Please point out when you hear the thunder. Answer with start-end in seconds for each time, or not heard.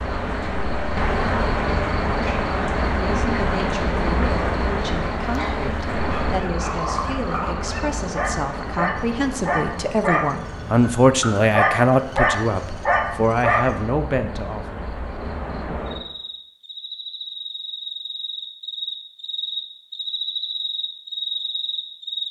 not heard.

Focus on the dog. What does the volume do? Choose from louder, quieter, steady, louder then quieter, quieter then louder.
louder.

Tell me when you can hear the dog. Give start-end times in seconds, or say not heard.
5.2-13.8.